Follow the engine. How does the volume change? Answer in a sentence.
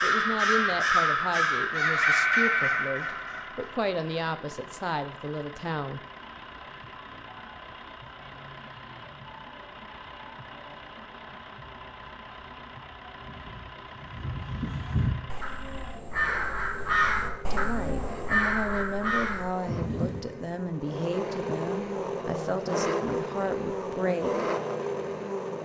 The loudness of the engine goes up.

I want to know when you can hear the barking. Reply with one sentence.
You can't hear the barking here.